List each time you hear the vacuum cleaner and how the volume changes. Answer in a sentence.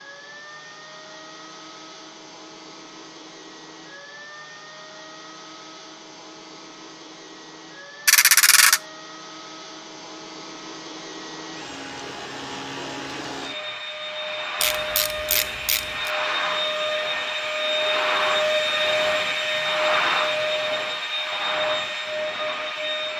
The vacuum cleaner can be heard from 0.0 to 23.1 s, getting louder.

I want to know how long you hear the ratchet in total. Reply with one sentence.
The ratchet can be heard for 2 seconds in total.